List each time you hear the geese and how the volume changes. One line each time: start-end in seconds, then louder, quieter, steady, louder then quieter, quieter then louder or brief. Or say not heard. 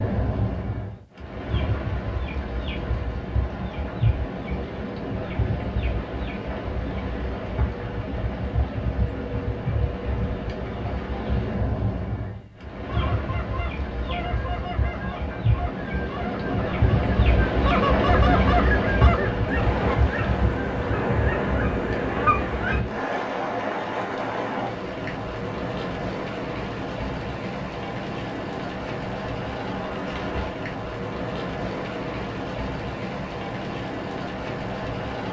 12.2-22.8 louder.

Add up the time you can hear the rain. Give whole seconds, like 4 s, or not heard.
35 s.